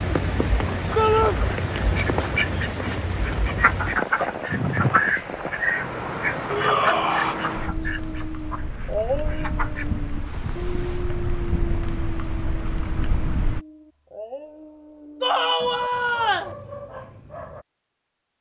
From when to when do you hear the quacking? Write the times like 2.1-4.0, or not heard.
0.9-11.1.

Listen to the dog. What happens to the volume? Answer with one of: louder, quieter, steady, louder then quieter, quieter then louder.
quieter.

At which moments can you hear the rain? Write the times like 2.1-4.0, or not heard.
0.0-13.6.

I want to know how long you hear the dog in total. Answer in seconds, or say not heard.
11 s.